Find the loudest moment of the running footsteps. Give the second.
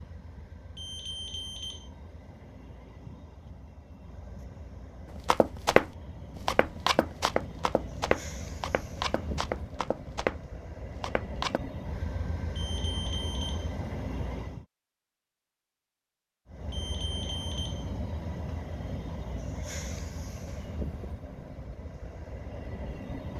6 s.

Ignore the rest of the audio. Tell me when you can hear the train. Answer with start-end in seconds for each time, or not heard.
0.0-14.7, 16.4-23.3.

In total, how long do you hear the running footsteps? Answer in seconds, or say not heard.
6 s.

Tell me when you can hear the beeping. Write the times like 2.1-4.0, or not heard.
0.8-1.9, 12.6-13.8, 16.7-17.9.